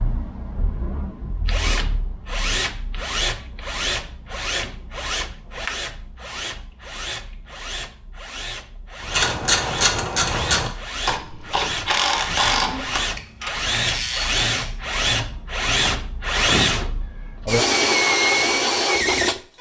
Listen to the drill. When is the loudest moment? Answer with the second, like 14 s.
18 s.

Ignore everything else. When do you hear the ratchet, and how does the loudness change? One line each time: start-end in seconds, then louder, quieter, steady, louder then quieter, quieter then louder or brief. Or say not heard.
9.0-14.8 quieter.